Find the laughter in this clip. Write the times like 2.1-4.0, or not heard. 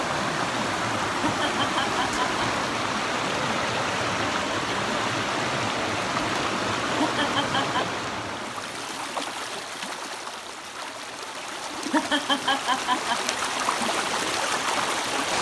1.2-2.5, 7.0-8.0, 11.9-13.3.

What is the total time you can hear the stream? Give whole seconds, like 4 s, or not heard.
15 s.